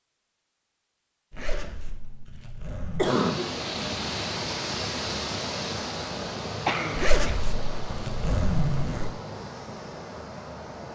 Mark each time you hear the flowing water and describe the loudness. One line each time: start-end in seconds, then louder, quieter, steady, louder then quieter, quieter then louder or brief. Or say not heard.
3.0-10.9 quieter.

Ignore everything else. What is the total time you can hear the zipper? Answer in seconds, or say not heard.
4 s.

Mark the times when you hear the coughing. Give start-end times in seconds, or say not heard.
3.0-3.5, 6.7-7.4.